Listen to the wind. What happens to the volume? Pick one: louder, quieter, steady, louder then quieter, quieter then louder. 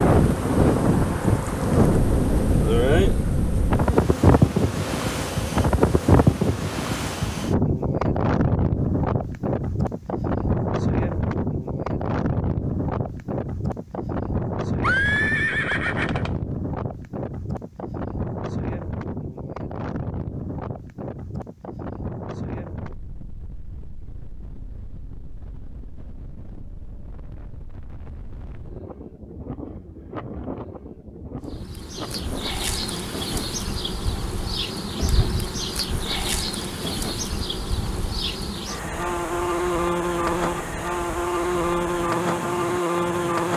quieter.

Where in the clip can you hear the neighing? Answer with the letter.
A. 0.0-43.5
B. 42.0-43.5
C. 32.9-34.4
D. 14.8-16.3
D.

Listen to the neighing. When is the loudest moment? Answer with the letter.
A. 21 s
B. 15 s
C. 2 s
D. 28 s
B.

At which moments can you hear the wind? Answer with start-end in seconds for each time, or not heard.
0.0-43.5.